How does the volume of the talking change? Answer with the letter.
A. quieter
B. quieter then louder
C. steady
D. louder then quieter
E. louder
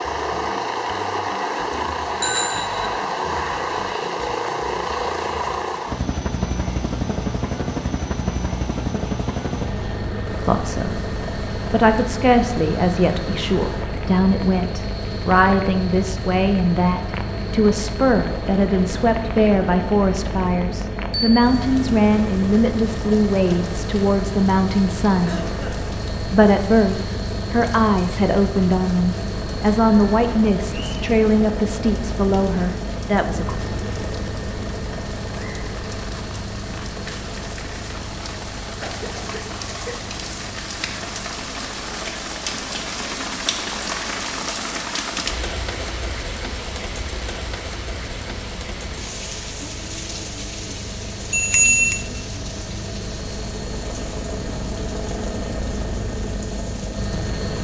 C.